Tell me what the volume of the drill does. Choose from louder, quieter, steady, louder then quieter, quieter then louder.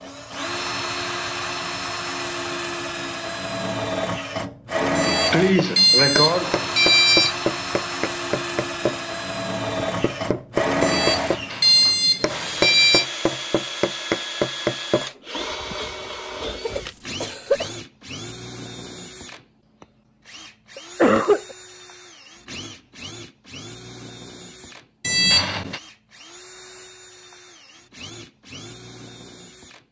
quieter.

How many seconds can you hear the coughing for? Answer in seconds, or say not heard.
3 s.